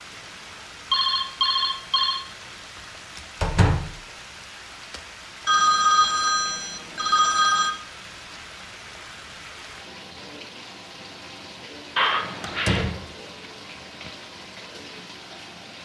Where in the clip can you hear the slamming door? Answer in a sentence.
The slamming door can be heard from 3.4 to 4.0 s and from 12.4 to 13.1 s.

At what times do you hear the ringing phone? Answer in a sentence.
You can hear the ringing phone from 0.9 to 2.2 s, from 5.5 to 7.8 s and from 11.9 to 12.9 s.